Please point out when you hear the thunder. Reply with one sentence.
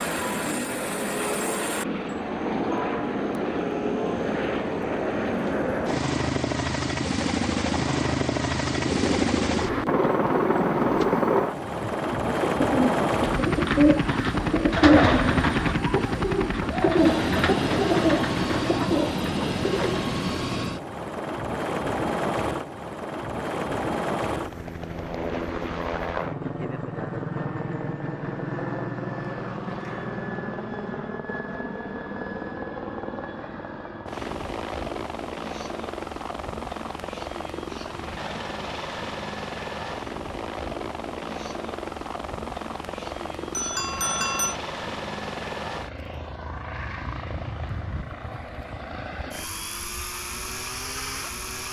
You can't hear the thunder here.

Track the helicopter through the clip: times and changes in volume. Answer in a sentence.
The helicopter can be heard from 0.0 to 51.6 s, getting quieter.